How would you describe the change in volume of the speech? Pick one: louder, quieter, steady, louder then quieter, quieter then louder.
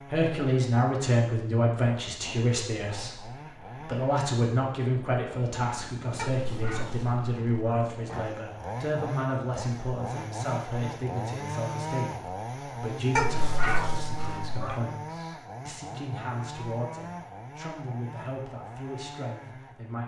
quieter.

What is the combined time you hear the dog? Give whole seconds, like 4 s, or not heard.
4 s.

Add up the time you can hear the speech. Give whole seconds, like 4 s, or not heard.
20 s.